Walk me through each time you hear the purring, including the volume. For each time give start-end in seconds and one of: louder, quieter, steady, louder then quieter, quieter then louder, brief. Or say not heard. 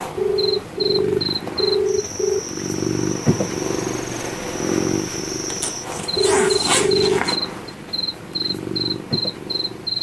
0.0-9.9 louder then quieter.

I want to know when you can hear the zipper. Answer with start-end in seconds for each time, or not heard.
5.5-7.4.